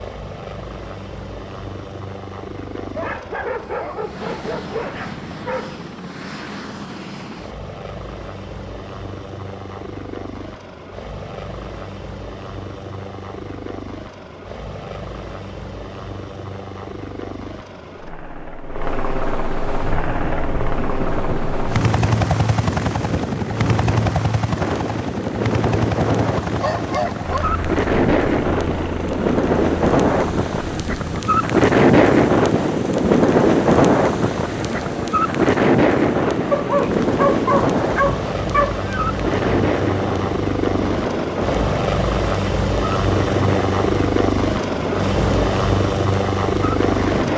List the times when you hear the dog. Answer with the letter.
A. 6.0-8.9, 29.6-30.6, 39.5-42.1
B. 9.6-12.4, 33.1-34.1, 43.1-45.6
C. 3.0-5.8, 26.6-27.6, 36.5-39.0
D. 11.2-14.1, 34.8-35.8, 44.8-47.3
C.